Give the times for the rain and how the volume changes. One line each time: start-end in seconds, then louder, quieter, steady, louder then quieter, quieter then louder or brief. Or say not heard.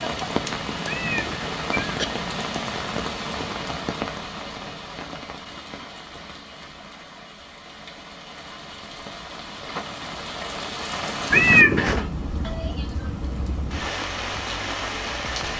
0.0-15.5 quieter then louder.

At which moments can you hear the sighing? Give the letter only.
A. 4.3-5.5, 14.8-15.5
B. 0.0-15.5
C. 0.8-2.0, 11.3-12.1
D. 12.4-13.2
D.